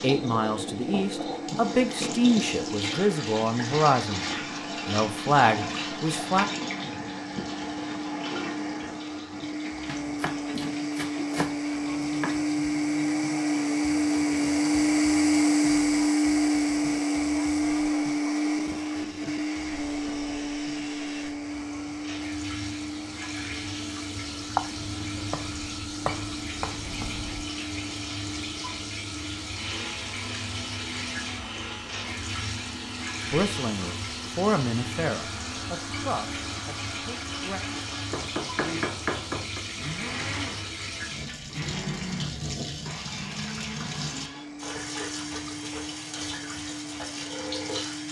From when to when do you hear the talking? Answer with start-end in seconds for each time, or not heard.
0.0-6.5, 33.3-37.6.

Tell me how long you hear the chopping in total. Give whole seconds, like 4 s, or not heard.
7 s.